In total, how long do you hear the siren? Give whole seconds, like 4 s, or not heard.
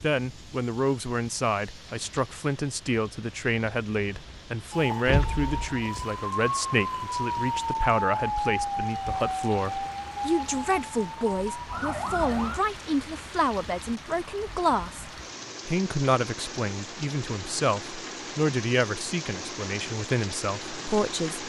8 s.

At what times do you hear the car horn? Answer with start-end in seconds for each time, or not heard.
5.0-5.8.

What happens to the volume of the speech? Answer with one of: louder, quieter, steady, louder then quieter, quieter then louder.
steady.